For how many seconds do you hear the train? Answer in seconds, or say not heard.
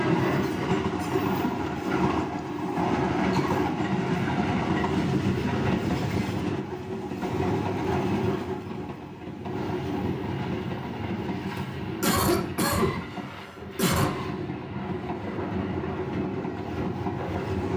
18 s.